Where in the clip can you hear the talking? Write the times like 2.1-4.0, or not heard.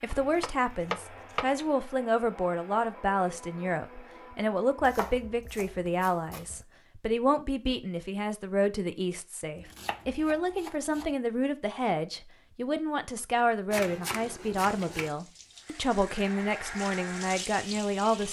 0.0-18.2.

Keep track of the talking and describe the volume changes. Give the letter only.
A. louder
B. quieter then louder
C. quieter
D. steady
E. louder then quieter
D.